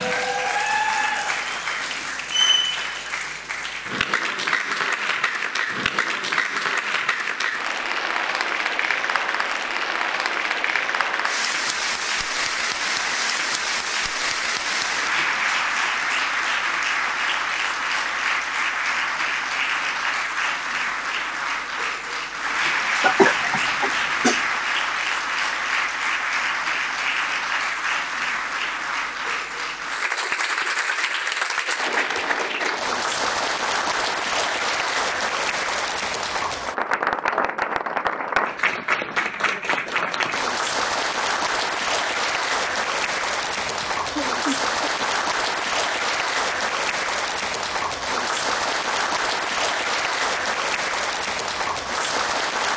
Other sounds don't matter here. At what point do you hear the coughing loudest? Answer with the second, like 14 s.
23 s.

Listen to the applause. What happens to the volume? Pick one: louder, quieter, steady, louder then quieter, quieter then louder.
steady.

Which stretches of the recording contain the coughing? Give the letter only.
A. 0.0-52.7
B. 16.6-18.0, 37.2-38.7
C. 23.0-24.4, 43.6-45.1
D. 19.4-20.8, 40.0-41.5
C.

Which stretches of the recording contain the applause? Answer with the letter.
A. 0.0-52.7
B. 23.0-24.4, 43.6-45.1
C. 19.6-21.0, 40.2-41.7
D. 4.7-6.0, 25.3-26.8
A.